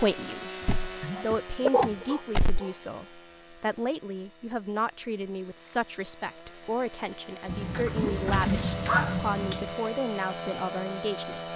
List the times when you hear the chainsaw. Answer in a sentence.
The chainsaw can be heard from 0.0 to 11.5 s.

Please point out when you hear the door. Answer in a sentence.
The door can be heard from 0.7 to 2.6 s and from 7.8 to 8.9 s.